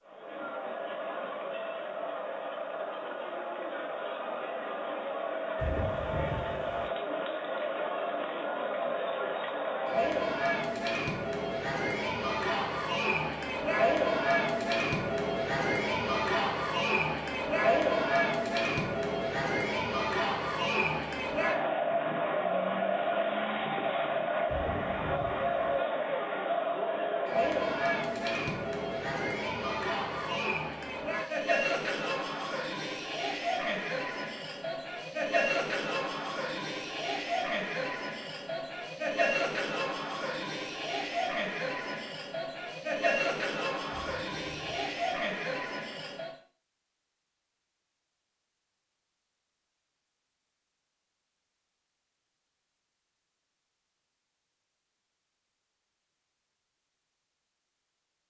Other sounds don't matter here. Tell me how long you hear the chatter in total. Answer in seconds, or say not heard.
46 s.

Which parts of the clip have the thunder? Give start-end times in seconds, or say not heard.
5.5-6.9, 24.4-25.8, 43.9-45.1.